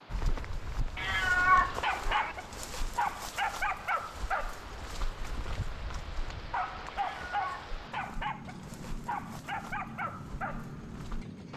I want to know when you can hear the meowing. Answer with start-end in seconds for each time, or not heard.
0.9-2.4, 6.9-7.6.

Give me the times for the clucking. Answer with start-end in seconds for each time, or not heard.
not heard.